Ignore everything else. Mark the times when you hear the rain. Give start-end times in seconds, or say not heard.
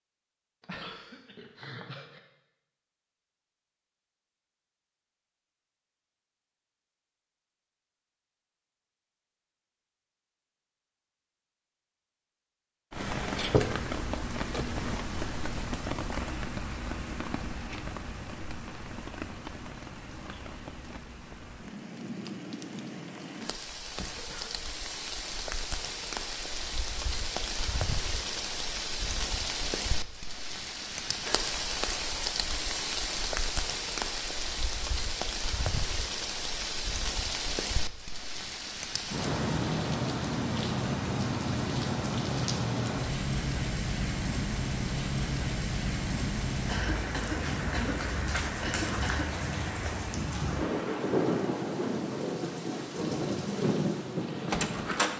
12.9-55.1.